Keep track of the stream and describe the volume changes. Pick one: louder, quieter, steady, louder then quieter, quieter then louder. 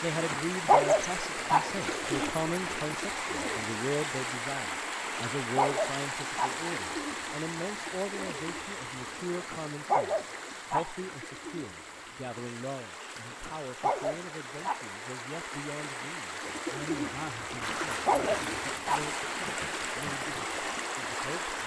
quieter then louder.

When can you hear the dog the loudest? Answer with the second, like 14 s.
1 s.